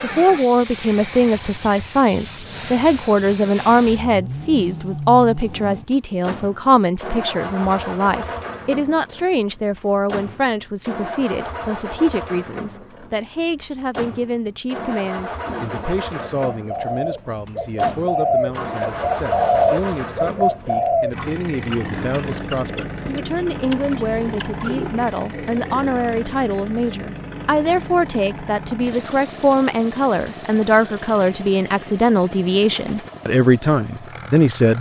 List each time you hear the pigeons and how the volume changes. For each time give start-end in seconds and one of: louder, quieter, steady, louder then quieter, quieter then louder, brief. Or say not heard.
15.4-26.0 louder then quieter.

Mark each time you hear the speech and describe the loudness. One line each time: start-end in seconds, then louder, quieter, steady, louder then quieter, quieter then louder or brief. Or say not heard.
0.0-34.7 quieter then louder.